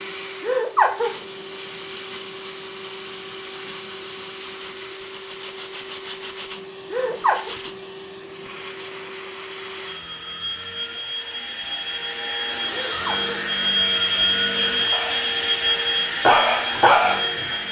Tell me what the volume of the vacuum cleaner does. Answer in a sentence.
The volume of the vacuum cleaner goes up.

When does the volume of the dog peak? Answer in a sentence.
The loudest moment of the dog is at 17 seconds.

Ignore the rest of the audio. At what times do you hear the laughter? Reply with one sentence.
You can hear the laughter from 0.4 to 1.1 s, from 6.9 to 7.5 s and from 12.7 to 13.4 s.